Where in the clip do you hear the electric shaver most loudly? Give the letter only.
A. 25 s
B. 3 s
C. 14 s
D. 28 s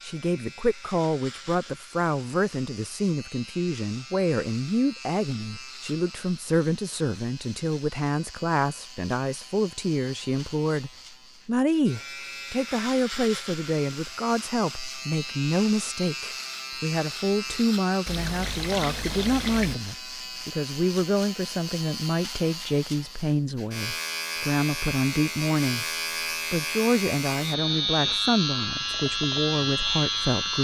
D.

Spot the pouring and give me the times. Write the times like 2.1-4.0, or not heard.
18.1-19.8.